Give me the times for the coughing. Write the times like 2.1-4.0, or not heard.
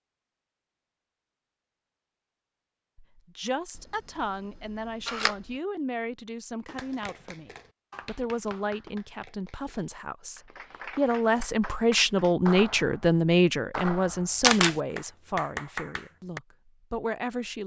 not heard.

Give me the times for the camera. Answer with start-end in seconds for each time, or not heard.
4.5-5.5, 14.4-14.8.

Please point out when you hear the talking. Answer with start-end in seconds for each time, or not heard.
3.1-17.6.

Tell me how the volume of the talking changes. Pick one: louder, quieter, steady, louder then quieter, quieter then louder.
louder then quieter.